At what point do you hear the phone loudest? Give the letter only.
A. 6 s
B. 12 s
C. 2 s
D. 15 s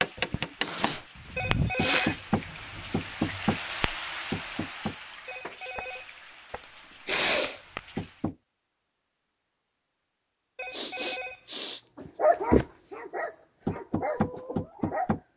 C.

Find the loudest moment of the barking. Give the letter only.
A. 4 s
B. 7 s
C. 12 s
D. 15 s
C.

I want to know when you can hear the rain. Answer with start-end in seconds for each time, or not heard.
0.0-8.3.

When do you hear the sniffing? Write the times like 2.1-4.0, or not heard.
0.1-2.1, 6.6-8.0, 10.7-11.9.